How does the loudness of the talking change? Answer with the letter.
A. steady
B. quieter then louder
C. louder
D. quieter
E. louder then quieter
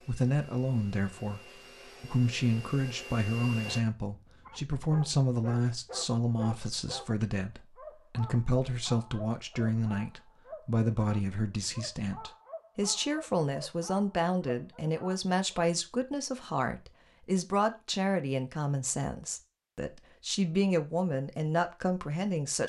A.